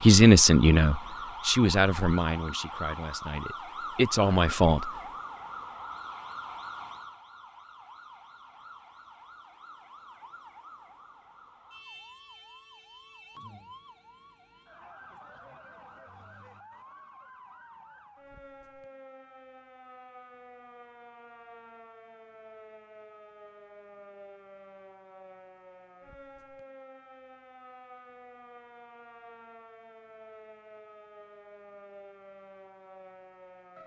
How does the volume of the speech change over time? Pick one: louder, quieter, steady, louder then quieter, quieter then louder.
quieter then louder.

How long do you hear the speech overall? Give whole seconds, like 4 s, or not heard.
5 s.